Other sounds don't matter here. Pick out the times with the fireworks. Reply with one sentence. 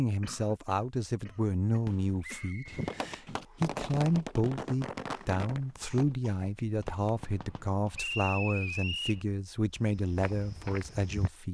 The fireworks can be heard from 1.9 to 7.9 s.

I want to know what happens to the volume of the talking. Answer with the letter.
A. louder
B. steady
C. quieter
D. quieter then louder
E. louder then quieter
B.